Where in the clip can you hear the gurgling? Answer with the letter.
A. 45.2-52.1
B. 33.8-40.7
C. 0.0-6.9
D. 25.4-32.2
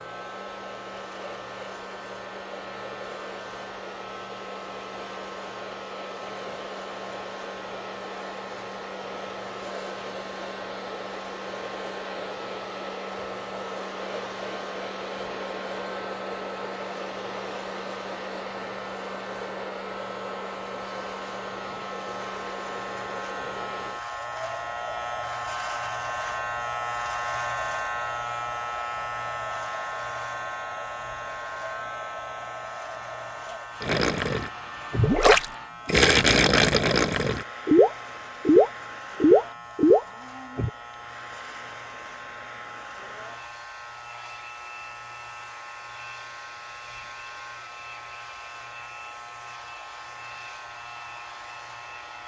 B.